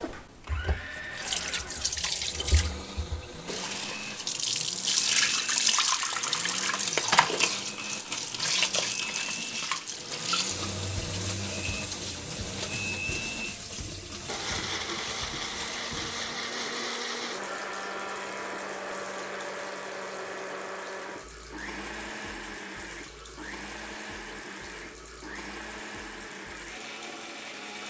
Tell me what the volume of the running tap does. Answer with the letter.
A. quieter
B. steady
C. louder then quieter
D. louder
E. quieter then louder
A.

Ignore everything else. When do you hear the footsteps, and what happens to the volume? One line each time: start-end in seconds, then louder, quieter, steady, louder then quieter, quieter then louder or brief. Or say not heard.
not heard.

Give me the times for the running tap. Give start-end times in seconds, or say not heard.
0.0-27.8.